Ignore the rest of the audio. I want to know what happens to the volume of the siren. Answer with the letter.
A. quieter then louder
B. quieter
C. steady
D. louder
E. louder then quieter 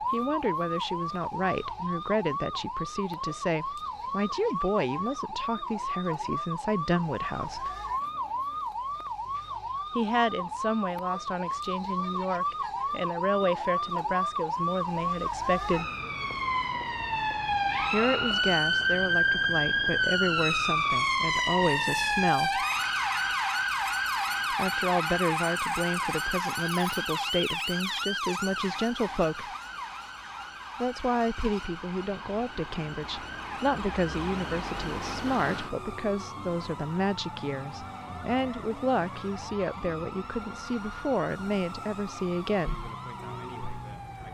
E.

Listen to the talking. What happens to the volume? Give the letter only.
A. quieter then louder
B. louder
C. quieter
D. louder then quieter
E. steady
E.